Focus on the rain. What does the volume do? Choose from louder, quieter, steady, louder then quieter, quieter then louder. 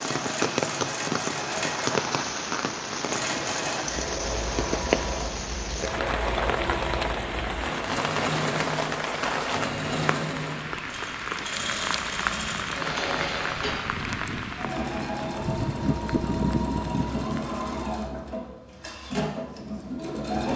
steady.